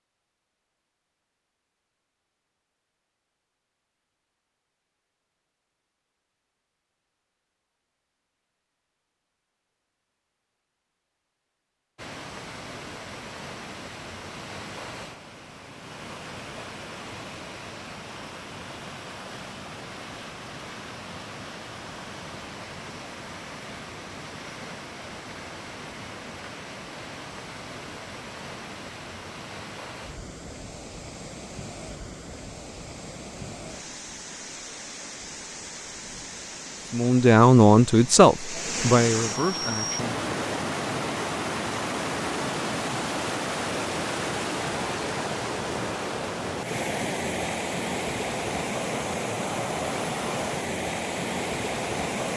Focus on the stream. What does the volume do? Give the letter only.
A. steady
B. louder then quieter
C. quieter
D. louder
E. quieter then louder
D.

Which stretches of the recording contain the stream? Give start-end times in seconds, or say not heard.
11.9-52.3.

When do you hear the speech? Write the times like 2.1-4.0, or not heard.
36.9-40.1.